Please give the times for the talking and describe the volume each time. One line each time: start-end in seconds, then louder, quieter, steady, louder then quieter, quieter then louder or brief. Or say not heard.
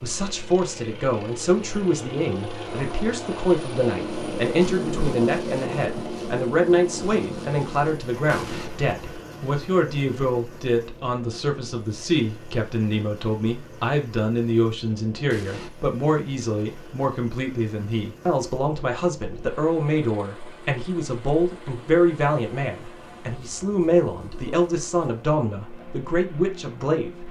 0.0-27.2 steady.